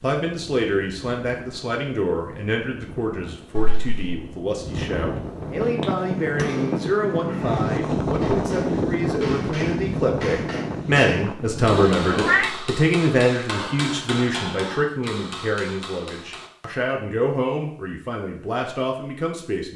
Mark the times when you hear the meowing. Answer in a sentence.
The meowing can be heard from 3.5 to 4.2 s and from 11.8 to 12.5 s.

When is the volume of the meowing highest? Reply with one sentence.
The loudest moment of the meowing is at 12 seconds.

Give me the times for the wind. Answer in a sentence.
You can hear the wind from 0.2 to 12.4 s.